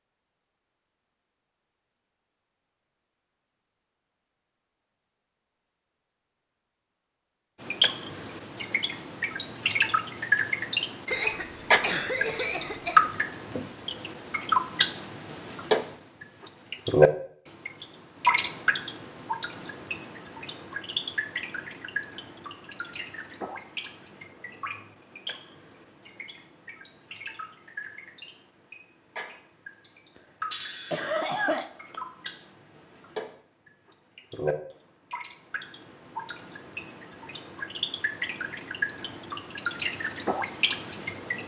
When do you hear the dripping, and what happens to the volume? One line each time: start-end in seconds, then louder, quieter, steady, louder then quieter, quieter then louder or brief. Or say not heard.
7.6-41.4 quieter then louder.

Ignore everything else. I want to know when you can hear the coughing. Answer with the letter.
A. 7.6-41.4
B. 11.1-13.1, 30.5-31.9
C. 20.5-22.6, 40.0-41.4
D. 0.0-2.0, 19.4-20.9
B.